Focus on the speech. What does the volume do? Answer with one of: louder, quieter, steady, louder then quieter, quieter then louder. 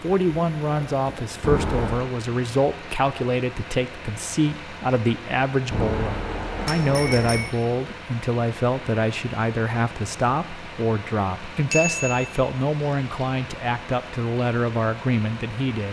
steady.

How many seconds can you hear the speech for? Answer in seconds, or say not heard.
16 s.